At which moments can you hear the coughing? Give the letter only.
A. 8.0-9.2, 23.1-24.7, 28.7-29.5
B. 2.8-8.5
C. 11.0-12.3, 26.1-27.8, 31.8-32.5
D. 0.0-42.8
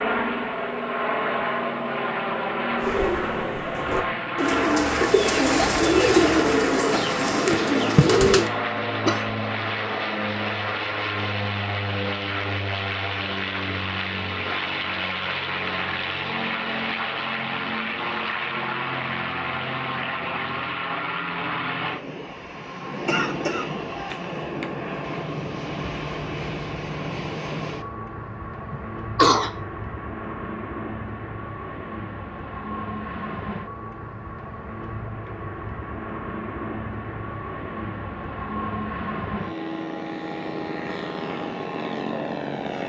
A.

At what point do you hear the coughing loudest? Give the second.
29 s.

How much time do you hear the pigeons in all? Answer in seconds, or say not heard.
6 s.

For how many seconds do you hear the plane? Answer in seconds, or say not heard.
43 s.